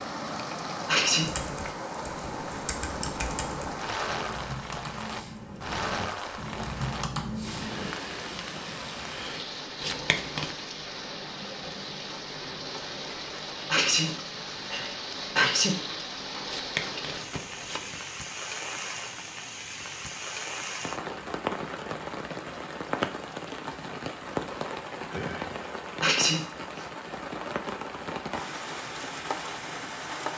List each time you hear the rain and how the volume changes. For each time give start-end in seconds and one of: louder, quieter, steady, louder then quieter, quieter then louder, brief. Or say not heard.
0.0-30.3 steady.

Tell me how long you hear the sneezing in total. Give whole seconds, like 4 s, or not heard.
4 s.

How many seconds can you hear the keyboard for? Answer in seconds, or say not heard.
7 s.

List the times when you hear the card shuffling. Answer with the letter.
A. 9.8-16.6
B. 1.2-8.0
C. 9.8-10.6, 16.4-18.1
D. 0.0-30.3
C.